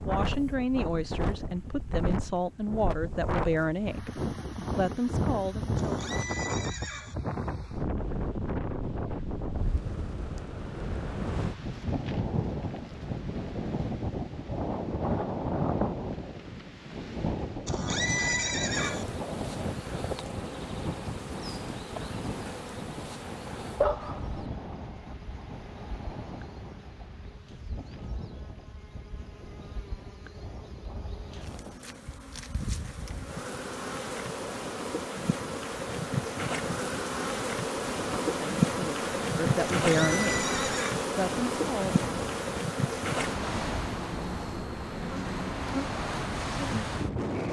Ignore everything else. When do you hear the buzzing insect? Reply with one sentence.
The buzzing insect can be heard from 18.8 to 47.4 s.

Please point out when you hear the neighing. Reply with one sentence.
You can hear the neighing from 5.8 to 7.2 s, from 17.6 to 19.1 s and from 39.8 to 41.0 s.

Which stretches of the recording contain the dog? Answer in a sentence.
The dog can be heard from 23.8 to 24.4 s.